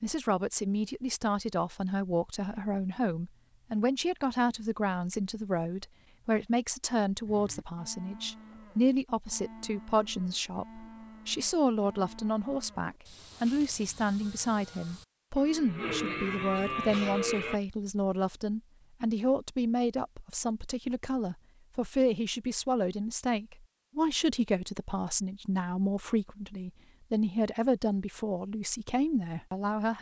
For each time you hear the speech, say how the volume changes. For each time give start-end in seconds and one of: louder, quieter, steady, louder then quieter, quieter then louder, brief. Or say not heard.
0.0-29.9 steady.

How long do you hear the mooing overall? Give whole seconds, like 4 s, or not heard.
10 s.